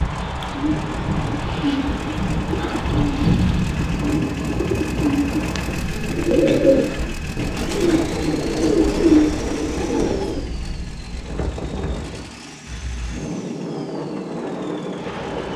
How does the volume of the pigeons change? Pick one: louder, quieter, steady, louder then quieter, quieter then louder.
louder.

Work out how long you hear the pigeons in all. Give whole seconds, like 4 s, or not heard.
10 s.